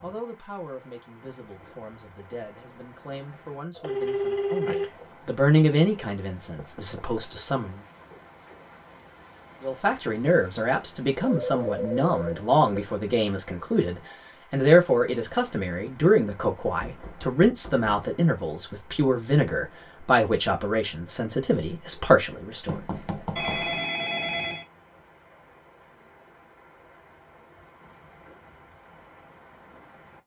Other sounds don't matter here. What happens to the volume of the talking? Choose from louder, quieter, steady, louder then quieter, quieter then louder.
louder.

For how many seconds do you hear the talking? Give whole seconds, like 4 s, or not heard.
21 s.